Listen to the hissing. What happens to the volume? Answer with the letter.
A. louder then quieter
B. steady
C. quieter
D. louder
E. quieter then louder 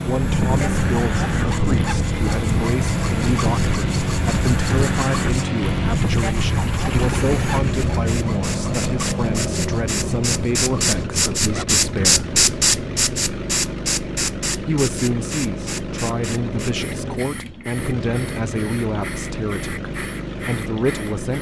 A.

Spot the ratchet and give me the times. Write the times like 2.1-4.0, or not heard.
not heard.